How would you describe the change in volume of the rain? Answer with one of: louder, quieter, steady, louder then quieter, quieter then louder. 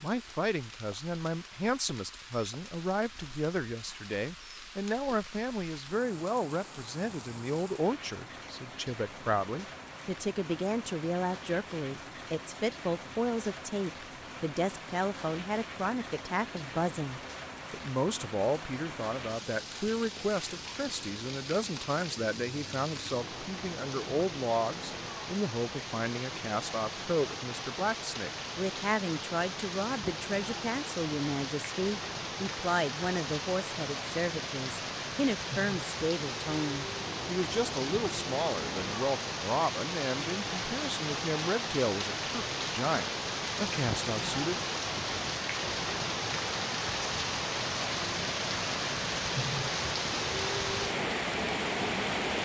louder.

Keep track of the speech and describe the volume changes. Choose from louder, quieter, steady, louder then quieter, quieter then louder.
steady.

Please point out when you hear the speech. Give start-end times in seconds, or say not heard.
0.0-44.5.